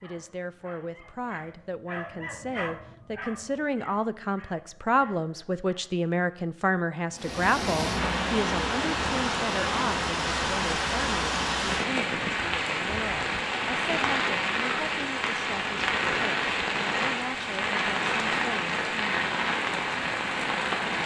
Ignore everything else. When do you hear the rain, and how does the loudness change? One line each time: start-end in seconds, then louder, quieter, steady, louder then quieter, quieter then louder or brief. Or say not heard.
7.1-21.0 steady.